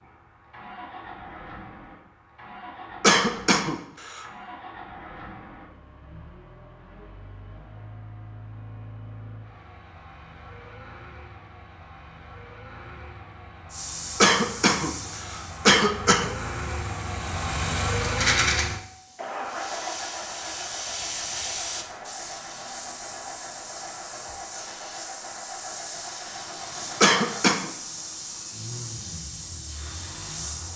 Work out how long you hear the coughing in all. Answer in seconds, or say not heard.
4 s.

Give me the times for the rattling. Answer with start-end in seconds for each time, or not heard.
18.0-18.6.